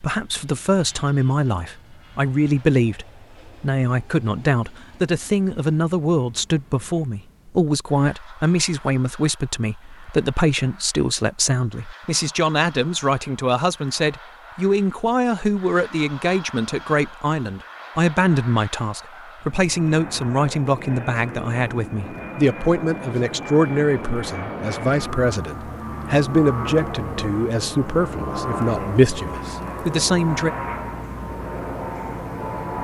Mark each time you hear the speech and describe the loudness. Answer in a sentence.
The speech can be heard from 0.0 to 30.5 s, at a steady volume.